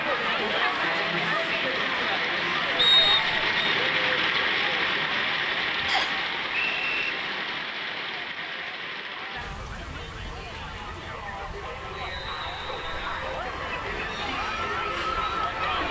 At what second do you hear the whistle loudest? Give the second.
3 s.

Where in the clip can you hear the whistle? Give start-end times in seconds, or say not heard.
2.8-3.8, 5.8-7.1, 11.9-13.3.